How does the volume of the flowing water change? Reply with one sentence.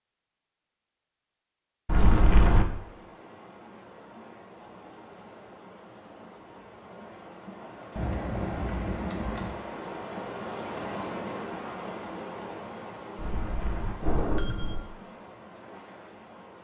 The loudness of the flowing water goes up, then down.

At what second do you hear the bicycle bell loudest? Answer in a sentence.
The volume of the bicycle bell peaks at 2 seconds.